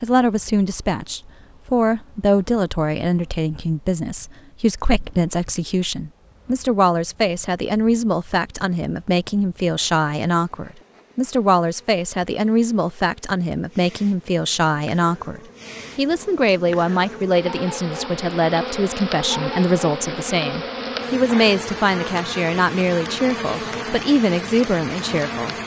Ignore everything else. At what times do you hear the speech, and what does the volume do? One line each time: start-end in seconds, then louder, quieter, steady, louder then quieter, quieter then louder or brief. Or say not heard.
0.0-25.6 steady.